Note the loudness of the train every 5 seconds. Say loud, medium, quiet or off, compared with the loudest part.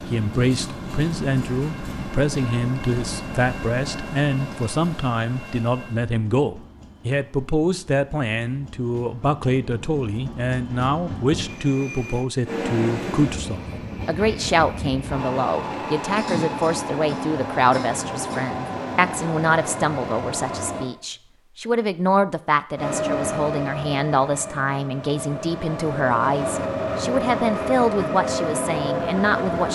medium, quiet, medium, loud, loud, loud.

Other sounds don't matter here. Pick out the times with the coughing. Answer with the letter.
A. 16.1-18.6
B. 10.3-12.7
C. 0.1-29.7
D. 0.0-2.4
A.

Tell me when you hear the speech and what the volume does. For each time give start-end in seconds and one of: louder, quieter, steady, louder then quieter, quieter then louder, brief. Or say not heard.
0.1-29.7 steady.